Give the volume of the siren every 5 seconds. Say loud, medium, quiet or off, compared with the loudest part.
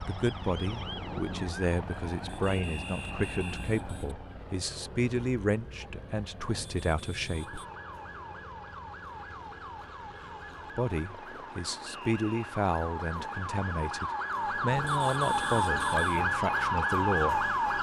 quiet, quiet, medium, loud.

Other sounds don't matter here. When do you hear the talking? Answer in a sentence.
The talking can be heard from 0.0 to 7.6 s and from 10.8 to 17.5 s.